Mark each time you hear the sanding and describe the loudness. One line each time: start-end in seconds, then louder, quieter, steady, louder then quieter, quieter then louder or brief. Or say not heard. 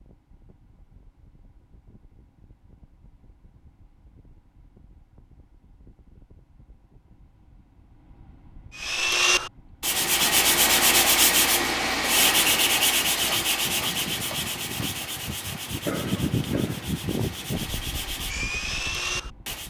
8.8-19.6 quieter then louder.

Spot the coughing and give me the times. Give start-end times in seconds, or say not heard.
15.8-16.9.